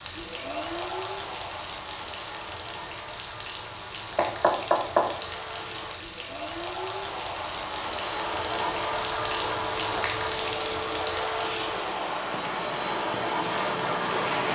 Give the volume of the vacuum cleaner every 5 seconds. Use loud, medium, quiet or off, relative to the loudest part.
medium, loud, loud.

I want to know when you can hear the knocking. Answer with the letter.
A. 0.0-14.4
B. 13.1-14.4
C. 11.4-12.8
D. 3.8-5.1
D.